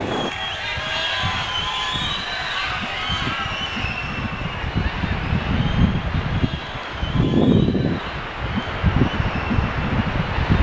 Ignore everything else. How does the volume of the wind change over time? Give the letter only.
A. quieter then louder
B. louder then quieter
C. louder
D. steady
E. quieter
C.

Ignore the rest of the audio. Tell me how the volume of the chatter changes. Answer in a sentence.
The loudness of the chatter goes down.